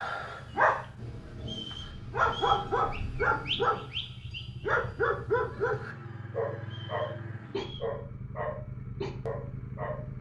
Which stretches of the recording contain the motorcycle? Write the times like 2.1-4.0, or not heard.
0.0-10.1.